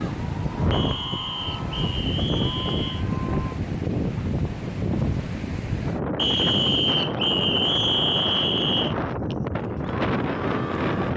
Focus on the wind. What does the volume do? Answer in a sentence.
The volume of the wind stays about the same.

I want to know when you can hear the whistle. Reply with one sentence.
You can hear the whistle from 0.7 to 3.0 s and from 6.2 to 8.9 s.